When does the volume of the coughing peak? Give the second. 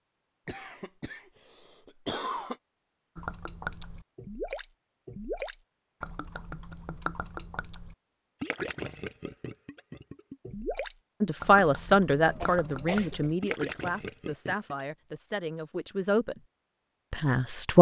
2 s.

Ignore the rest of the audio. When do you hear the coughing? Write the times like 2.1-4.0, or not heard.
0.5-2.5, 12.2-13.3.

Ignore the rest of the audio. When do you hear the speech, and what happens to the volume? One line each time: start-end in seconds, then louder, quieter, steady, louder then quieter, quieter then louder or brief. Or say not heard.
11.2-16.4 quieter
17.1-17.7 brief.